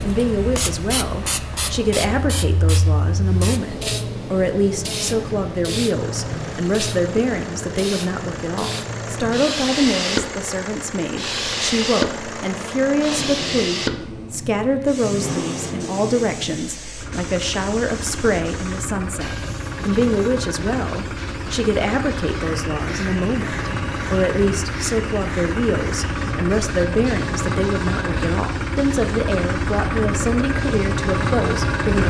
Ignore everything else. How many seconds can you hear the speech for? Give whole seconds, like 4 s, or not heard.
32 s.